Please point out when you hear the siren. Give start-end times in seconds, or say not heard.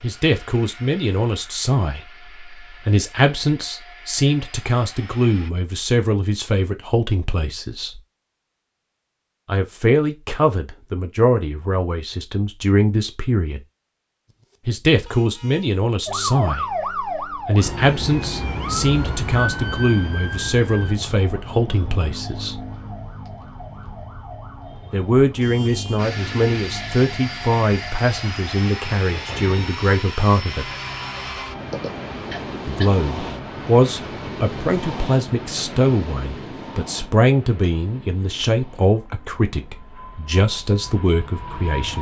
16.1-35.0.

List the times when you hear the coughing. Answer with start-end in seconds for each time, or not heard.
31.7-32.9.